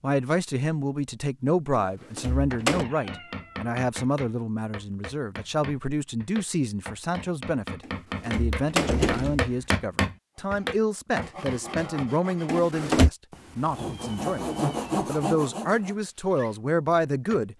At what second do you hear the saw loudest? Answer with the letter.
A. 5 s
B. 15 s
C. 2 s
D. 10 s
B.